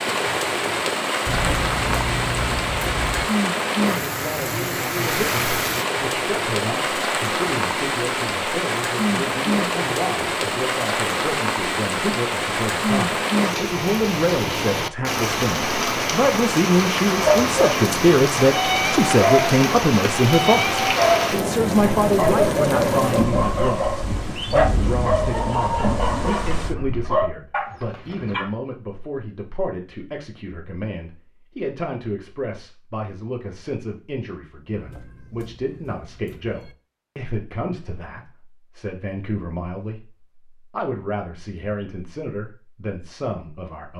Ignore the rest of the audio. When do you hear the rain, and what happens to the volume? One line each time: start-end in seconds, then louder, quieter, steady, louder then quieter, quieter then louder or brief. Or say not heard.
0.0-26.8 steady.